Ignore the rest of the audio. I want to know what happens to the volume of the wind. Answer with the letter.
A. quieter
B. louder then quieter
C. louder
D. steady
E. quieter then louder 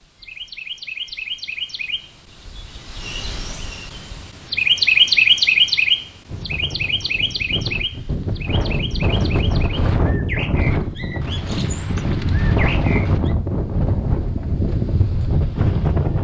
C.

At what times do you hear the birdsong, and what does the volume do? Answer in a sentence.
The birdsong can be heard from 0.0 to 13.3 s, getting louder then quieter.